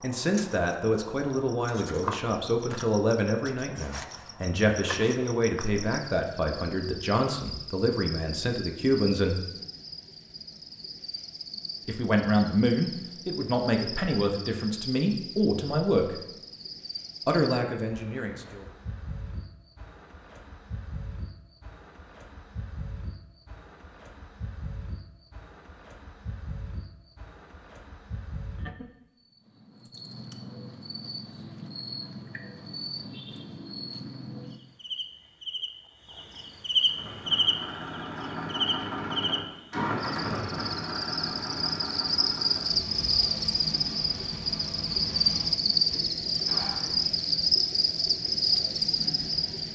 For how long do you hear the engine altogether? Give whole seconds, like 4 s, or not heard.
10 s.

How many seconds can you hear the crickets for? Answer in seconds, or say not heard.
50 s.